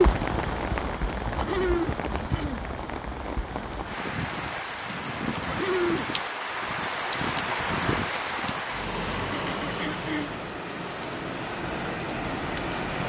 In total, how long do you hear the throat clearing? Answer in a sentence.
The throat clearing can be heard for 3 seconds in total.